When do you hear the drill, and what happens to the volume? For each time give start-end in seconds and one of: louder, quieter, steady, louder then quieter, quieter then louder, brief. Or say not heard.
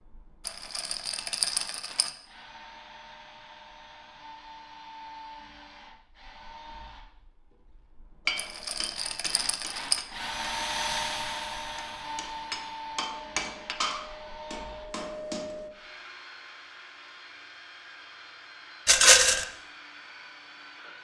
0.0-21.0 louder then quieter.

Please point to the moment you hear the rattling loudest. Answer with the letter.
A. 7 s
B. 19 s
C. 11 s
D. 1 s
B.